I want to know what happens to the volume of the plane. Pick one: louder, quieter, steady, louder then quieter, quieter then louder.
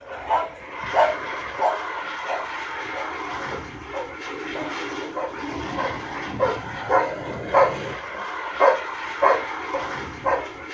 steady.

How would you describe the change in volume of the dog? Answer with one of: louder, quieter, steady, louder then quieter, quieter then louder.
quieter then louder.